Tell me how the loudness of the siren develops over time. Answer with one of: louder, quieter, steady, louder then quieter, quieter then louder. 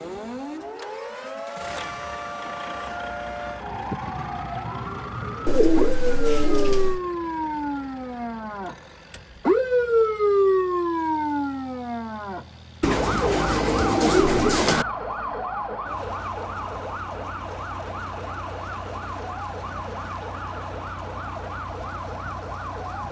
louder then quieter.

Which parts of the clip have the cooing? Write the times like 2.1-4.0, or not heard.
5.5-7.0, 12.8-14.8.